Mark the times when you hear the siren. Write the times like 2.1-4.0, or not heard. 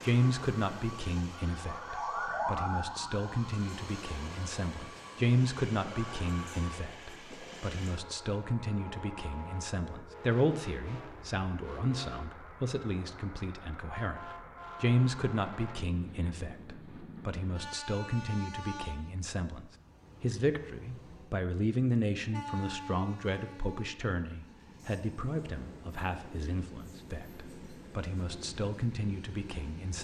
0.0-6.8.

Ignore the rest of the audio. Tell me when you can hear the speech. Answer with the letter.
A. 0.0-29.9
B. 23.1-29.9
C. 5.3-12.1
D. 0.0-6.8
A.